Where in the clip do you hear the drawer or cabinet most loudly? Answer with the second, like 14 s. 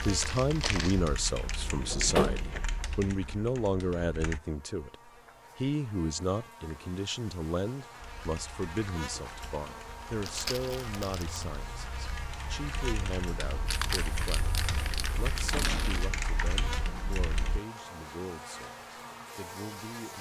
2 s.